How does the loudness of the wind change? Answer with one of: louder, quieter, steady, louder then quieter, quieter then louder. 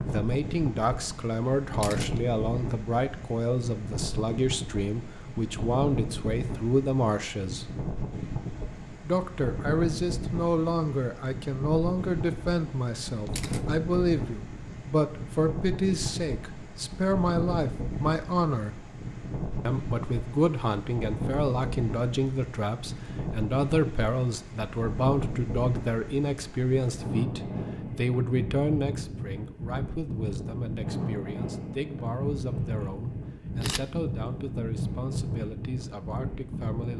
steady.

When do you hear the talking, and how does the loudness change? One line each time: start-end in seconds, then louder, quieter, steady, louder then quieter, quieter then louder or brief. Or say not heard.
0.1-7.8 steady
9.1-18.9 steady
19.6-36.9 quieter.